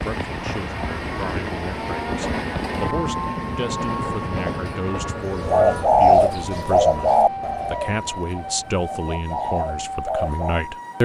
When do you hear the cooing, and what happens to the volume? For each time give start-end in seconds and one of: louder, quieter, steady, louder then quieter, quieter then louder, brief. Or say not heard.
5.5-10.6 quieter then louder.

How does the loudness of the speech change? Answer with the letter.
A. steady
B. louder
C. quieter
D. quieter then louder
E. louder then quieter
B.